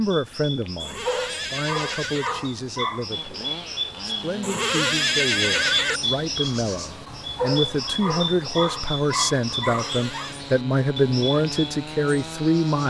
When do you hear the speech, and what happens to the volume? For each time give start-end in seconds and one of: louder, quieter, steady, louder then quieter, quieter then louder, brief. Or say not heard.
0.0-12.8 louder.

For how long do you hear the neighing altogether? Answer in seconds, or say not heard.
4 s.